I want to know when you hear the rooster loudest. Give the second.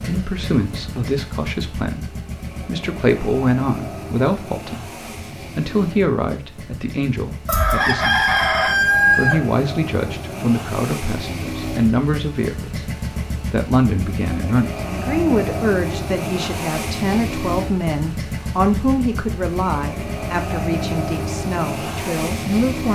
9 s.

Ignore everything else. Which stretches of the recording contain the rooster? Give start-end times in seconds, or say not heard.
7.5-9.4.